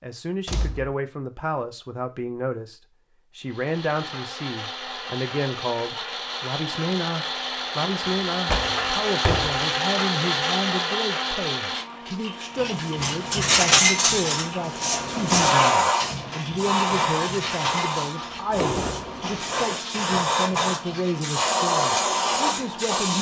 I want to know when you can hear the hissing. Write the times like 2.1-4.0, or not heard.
15.2-23.1.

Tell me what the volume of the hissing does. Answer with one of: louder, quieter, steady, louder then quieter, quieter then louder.
quieter then louder.